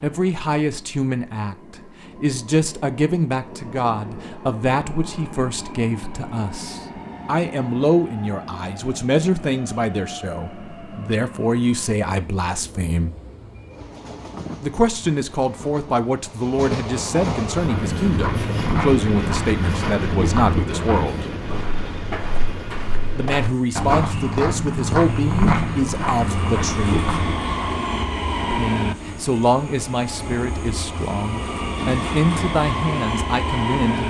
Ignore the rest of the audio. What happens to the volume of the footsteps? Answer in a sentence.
The volume of the footsteps goes down, then up.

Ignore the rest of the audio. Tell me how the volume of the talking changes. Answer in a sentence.
The volume of the talking stays about the same.